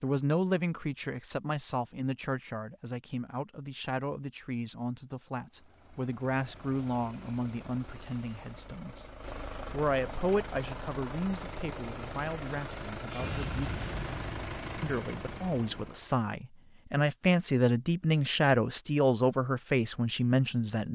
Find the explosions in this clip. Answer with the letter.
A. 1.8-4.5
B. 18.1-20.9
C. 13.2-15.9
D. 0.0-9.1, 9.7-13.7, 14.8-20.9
C.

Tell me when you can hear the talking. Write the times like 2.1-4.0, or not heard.
0.0-9.1, 9.7-13.7, 14.8-20.9.